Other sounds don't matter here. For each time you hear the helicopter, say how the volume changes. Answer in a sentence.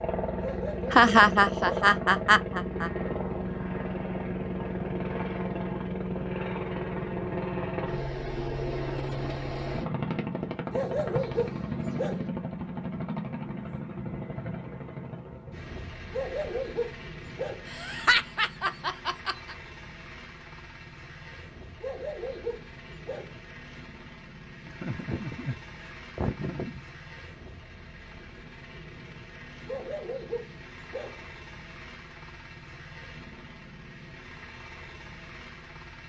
The helicopter can be heard from 0.0 to 36.0 s, getting quieter.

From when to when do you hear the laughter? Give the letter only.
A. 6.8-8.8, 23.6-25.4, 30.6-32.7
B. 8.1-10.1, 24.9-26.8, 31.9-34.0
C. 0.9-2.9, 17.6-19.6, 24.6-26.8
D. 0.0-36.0
C.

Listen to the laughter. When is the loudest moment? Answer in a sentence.
The loudest moment of the laughter is at 1 second.